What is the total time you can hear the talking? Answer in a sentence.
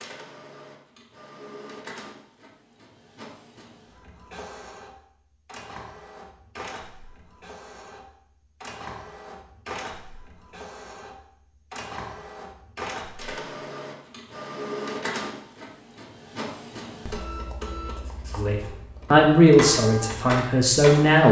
You can hear the talking for 3 seconds altogether.